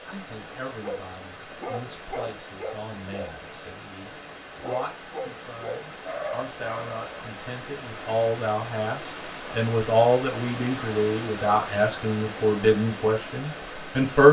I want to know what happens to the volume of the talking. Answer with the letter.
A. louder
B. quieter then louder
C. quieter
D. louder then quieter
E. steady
A.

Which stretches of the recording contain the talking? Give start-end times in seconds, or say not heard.
0.1-14.2.